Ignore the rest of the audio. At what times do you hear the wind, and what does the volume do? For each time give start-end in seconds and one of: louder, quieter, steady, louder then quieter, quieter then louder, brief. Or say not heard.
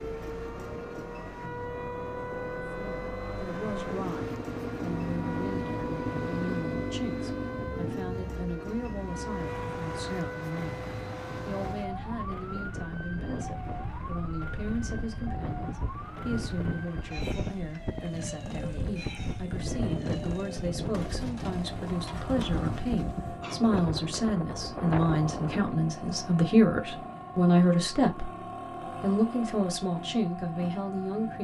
0.0-25.9 louder.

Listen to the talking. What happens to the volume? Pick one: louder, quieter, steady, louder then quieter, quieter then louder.
louder.